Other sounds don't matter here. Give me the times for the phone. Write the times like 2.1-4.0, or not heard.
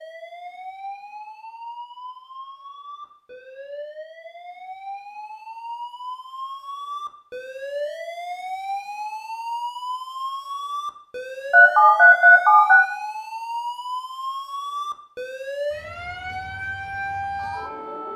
11.5-12.8.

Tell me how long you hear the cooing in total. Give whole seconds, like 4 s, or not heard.
not heard.